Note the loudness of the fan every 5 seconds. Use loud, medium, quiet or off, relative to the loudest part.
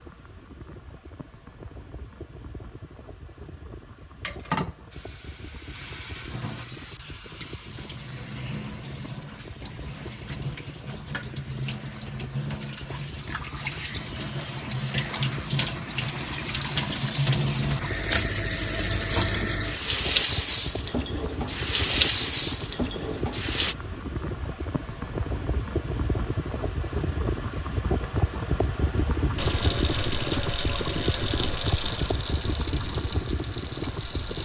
quiet, quiet, quiet, medium, medium, loud, loud.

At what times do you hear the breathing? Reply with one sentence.
The breathing can't be heard in this clip.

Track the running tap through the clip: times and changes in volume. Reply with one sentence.
The running tap can be heard from 4.2 to 23.8 s, getting louder; and from 29.4 to 34.4 s, getting quieter.